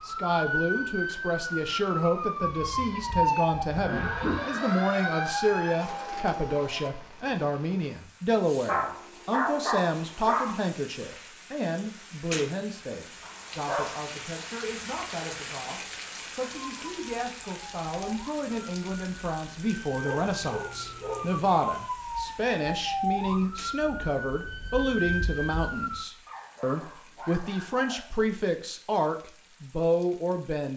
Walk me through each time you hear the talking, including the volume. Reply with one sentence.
The talking can be heard from 0.0 to 30.7 s, getting quieter then louder.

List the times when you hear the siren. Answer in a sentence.
The siren can be heard from 0.0 to 6.9 s and from 16.4 to 26.1 s.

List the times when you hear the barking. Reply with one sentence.
The barking can be heard from 2.6 to 4.3 s, from 8.7 to 10.6 s, from 13.2 to 14.0 s, from 20.0 to 21.4 s and from 26.2 to 28.2 s.